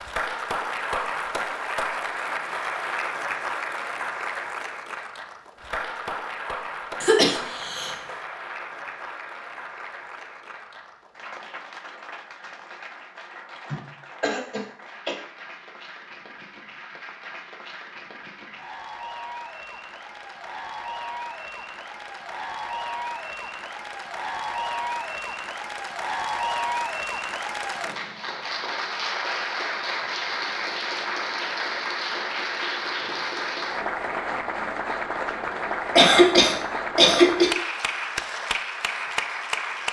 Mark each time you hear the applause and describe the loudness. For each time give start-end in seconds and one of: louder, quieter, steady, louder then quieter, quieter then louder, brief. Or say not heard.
0.0-39.8 quieter then louder.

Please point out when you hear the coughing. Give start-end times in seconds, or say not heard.
7.0-8.1, 13.7-15.2, 36.0-37.5.